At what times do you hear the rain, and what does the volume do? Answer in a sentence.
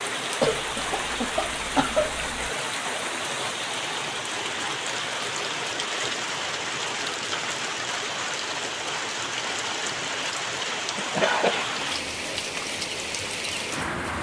You can hear the rain from 0.0 to 14.1 s, at a steady volume.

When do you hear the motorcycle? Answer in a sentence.
The motorcycle can't be heard in this clip.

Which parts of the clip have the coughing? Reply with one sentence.
The coughing can be heard from 0.4 to 2.5 s and from 10.9 to 11.7 s.